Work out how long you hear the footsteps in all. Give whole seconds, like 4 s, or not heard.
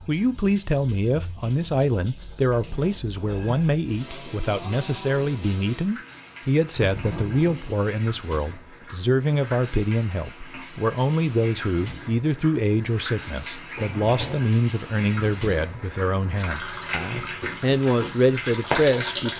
not heard.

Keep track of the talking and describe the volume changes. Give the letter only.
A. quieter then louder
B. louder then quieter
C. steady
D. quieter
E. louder
C.